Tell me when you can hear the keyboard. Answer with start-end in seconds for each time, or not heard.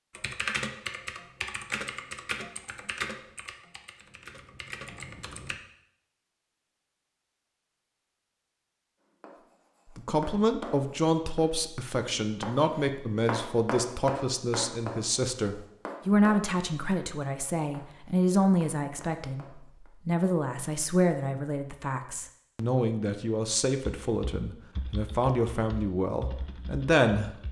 0.1-5.6, 24.0-27.4.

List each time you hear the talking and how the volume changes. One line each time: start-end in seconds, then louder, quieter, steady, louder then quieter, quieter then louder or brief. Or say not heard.
9.9-27.3 steady.